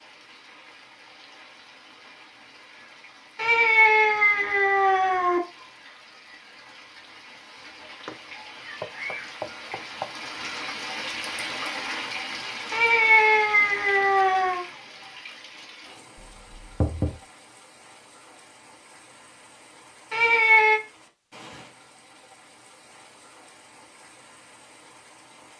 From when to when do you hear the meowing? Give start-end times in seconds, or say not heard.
3.4-5.4, 12.7-14.7, 20.1-20.8.